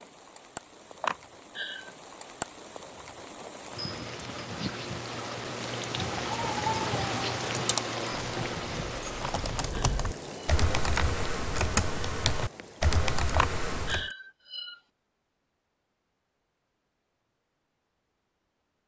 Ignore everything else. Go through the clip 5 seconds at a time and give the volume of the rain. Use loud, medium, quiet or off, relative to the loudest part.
medium, loud, medium, off.